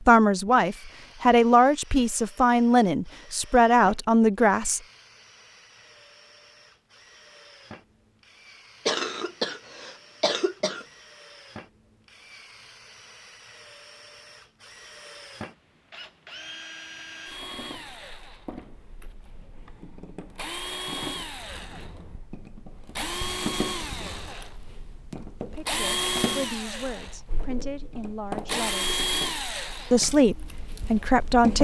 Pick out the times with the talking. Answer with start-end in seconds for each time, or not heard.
0.0-4.8, 25.3-29.0, 29.9-31.5.